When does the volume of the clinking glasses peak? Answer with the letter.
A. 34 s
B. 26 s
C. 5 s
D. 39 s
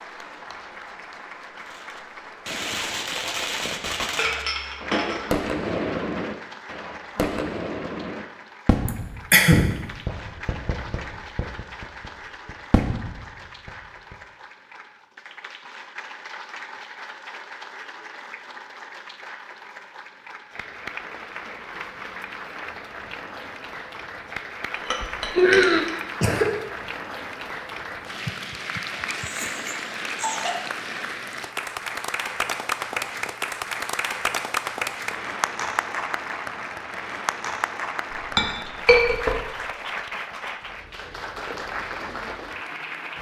D.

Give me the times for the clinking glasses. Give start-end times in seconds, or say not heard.
4.2-5.3, 24.8-25.9, 38.4-39.4.